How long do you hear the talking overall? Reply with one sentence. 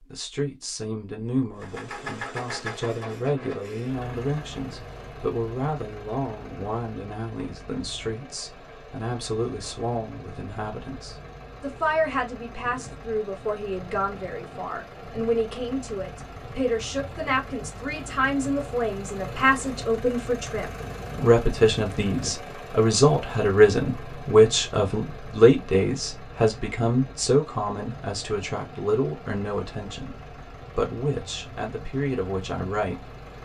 You can hear the talking for 33 seconds altogether.